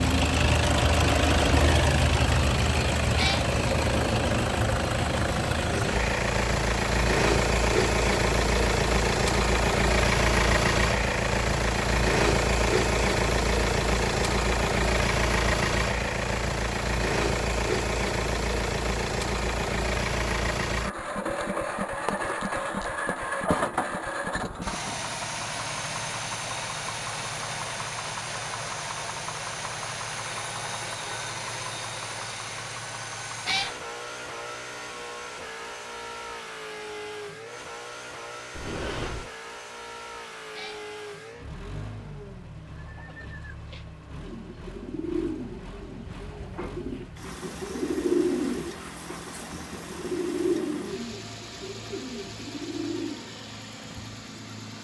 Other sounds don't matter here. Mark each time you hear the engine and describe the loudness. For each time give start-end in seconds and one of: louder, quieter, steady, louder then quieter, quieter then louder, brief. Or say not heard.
0.0-54.7 quieter.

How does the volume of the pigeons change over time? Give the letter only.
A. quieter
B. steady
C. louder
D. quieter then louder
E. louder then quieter
E.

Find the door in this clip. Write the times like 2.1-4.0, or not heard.
38.5-39.3.